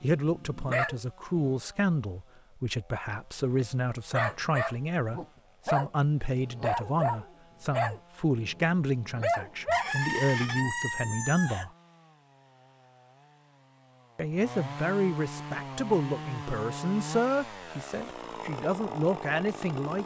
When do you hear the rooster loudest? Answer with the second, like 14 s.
10 s.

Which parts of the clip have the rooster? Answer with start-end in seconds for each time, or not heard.
9.7-11.7.